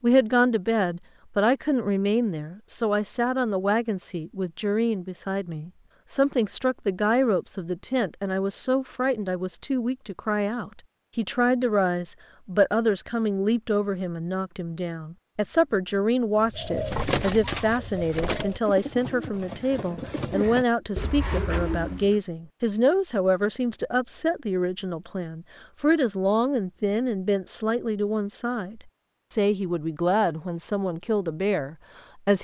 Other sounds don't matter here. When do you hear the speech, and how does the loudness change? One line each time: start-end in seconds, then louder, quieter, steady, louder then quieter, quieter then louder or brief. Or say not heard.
0.0-32.4 steady.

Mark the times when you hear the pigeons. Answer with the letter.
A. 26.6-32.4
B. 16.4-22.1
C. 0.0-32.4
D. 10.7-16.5
B.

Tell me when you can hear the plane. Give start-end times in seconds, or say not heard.
not heard.